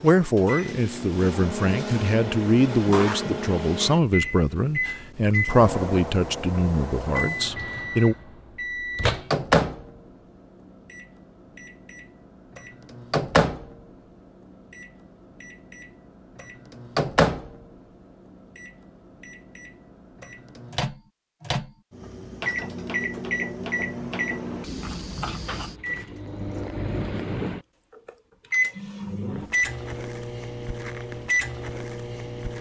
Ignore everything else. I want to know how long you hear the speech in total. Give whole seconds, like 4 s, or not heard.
8 s.